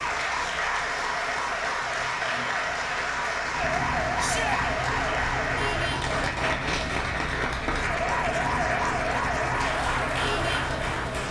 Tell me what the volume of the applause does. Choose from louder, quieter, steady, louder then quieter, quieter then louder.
steady.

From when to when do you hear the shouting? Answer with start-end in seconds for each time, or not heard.
4.2-4.6.